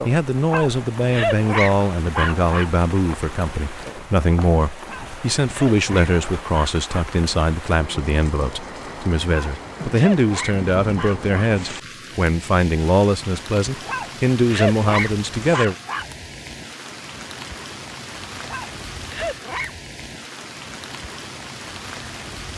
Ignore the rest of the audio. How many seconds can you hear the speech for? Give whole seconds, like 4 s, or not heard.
16 s.